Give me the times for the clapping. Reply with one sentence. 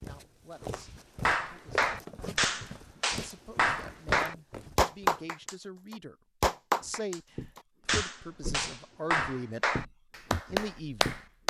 You can hear the clapping from 1.2 to 11.4 s.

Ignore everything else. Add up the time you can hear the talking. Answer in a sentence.
You can hear the talking for 10 seconds altogether.